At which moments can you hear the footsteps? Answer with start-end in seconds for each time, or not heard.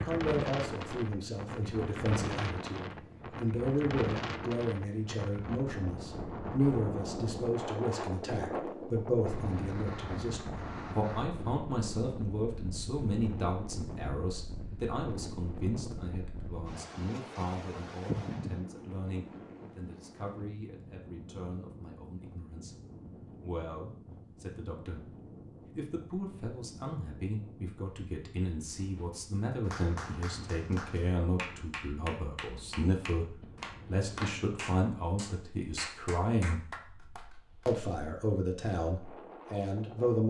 not heard.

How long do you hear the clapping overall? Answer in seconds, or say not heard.
8 s.